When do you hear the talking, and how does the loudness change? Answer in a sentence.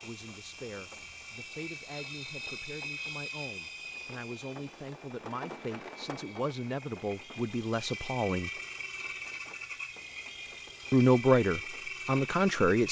You can hear the talking from 0.0 to 8.5 s, getting louder; and briefly from 10.9 to 12.8 s.